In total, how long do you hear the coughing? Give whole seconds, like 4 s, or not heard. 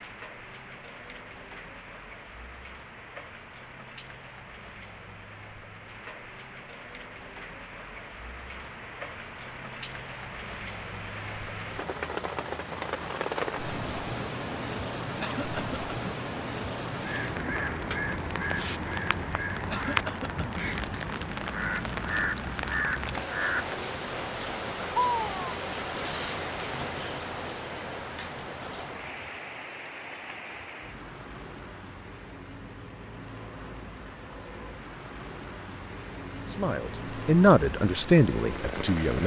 2 s.